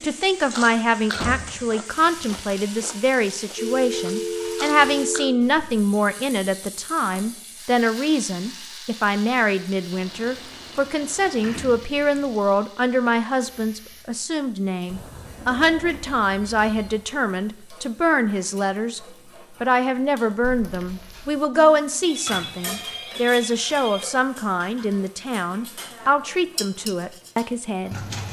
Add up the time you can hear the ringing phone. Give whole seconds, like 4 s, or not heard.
6 s.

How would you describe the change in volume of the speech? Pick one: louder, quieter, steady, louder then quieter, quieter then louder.
steady.